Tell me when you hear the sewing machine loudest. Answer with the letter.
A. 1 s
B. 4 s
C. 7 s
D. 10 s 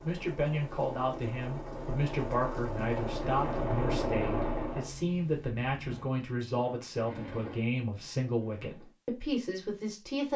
B.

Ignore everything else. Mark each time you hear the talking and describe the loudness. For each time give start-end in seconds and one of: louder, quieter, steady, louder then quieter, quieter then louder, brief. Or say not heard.
0.0-10.3 steady.